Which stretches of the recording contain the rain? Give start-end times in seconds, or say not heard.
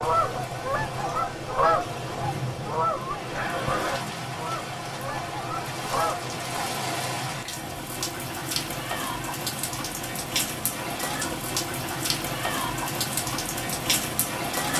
0.0-14.7.